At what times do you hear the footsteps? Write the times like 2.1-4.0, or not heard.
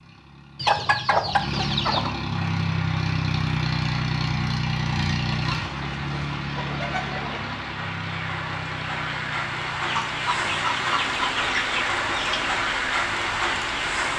not heard.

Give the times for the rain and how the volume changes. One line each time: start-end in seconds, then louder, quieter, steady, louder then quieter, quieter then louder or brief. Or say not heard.
2.3-14.1 louder.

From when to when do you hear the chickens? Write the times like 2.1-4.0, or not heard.
0.6-2.1, 5.3-7.6, 9.8-12.6.